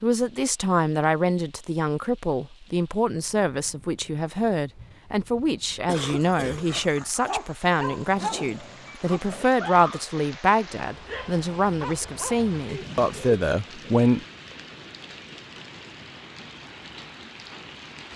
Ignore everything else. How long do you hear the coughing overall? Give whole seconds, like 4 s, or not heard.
2 s.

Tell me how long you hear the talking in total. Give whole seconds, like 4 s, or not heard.
14 s.